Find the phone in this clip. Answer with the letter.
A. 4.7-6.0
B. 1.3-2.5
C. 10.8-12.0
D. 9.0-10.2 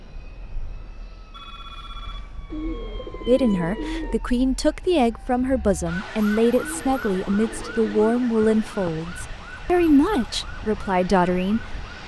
B.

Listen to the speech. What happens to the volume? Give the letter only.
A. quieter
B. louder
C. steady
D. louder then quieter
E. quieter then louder
C.